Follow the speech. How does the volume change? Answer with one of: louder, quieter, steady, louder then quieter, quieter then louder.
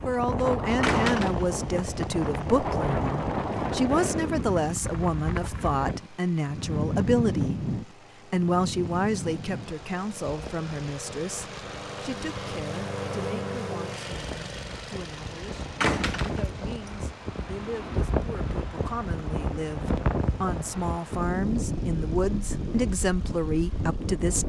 quieter then louder.